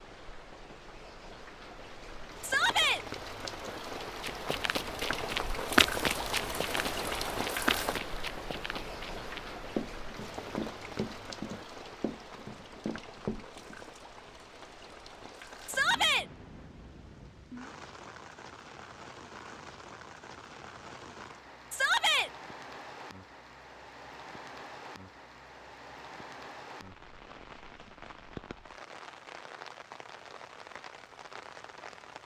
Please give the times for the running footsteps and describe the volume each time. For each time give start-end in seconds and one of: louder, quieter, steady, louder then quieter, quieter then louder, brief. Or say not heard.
4.2-13.8 quieter.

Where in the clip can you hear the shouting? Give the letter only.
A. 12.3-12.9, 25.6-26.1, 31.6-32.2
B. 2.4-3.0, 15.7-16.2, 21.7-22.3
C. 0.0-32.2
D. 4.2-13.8
B.